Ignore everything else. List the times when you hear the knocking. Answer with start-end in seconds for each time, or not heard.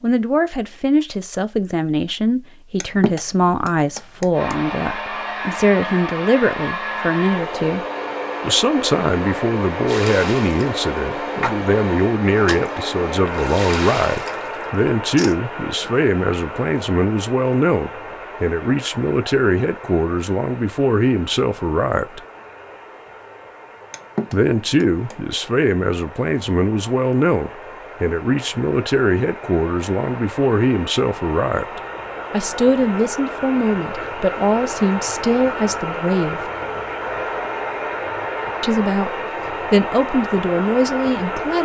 2.8-4.5, 23.9-25.1.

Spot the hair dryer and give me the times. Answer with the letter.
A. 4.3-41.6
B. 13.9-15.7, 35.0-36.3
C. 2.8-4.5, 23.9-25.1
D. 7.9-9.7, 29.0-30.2
A.